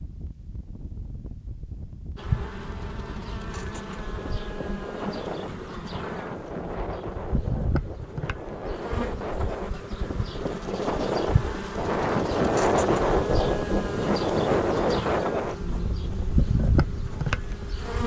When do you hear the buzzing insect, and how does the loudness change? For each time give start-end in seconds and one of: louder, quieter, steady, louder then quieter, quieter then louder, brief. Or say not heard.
2.1-18.0 louder.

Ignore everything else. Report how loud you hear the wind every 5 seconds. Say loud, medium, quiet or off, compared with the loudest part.
quiet, medium, loud, medium.